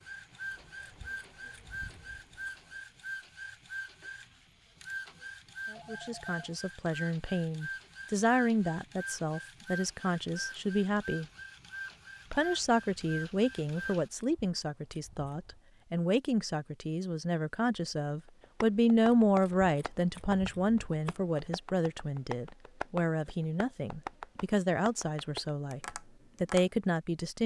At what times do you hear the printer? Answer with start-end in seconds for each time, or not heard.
0.0-14.1.